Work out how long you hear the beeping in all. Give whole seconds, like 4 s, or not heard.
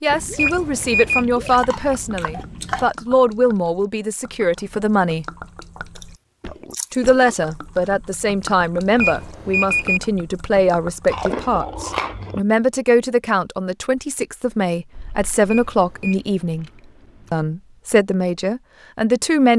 3 s.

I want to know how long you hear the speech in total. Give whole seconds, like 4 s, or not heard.
17 s.